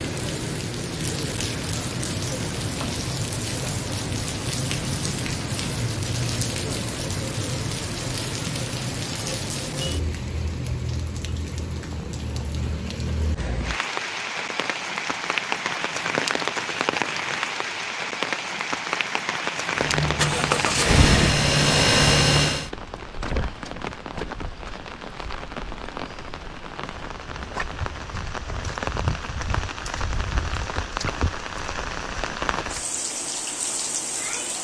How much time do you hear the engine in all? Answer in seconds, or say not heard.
3 s.